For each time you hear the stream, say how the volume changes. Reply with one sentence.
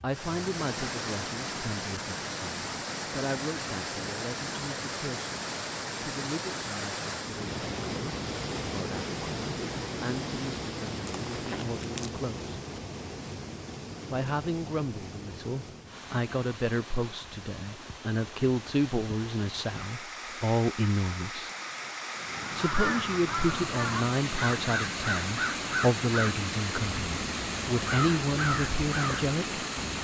You can hear the stream from 0.0 to 29.9 s, getting quieter then louder.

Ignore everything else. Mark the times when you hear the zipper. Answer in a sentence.
The zipper can be heard from 11.1 to 12.1 s.